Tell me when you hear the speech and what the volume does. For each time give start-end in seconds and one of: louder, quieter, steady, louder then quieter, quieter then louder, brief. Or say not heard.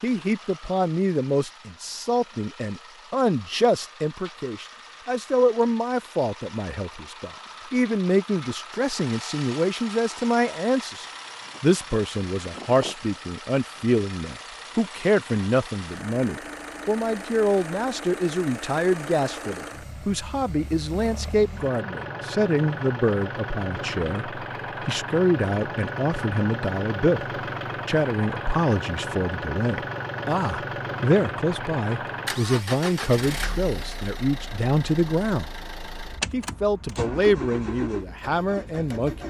0.0-35.5 steady
36.3-39.2 brief.